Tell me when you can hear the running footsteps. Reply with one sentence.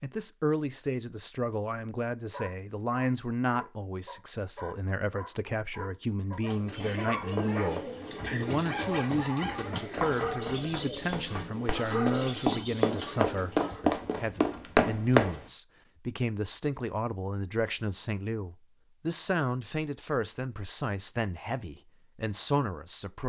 The running footsteps can be heard from 7.2 to 15.4 s.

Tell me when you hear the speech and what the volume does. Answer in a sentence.
The speech can be heard from 0.0 to 23.2 s, at a steady volume.